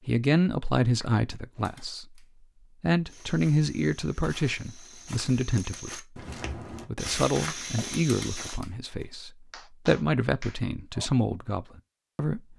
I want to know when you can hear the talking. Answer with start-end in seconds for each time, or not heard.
0.1-2.2, 2.8-6.0, 6.8-12.5.